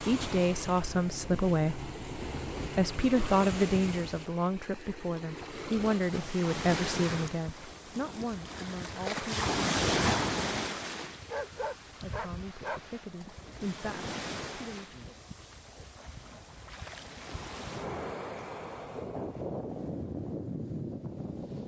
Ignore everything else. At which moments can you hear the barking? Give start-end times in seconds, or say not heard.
11.2-13.1.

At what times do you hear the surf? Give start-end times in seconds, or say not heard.
0.0-21.6.